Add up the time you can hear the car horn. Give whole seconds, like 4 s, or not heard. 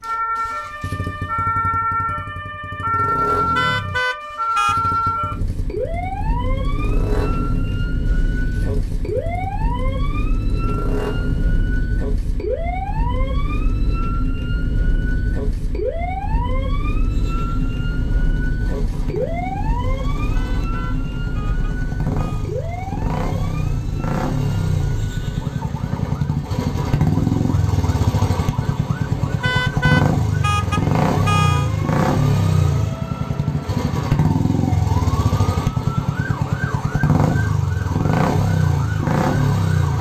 6 s.